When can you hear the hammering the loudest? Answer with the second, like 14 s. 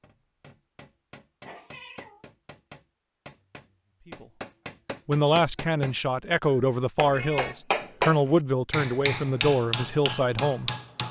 8 s.